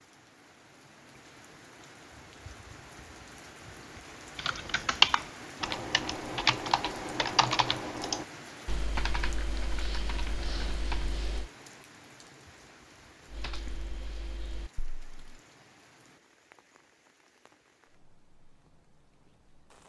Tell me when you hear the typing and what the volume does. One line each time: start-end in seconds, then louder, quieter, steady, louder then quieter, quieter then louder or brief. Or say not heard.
4.3-11.5 quieter
13.3-15.4 brief.